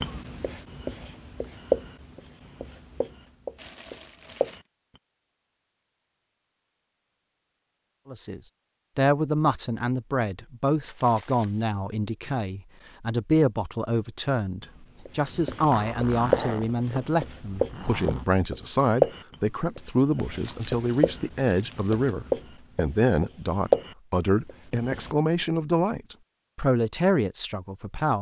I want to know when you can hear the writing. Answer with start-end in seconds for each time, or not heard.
0.0-5.0, 14.6-25.1.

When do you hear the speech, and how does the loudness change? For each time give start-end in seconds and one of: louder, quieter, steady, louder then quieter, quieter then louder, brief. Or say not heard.
8.1-28.1 steady.